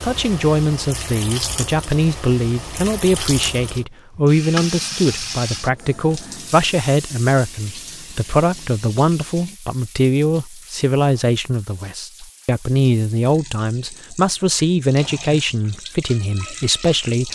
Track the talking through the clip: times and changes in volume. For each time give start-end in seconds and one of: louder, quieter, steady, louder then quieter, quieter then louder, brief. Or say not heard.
0.0-17.3 steady.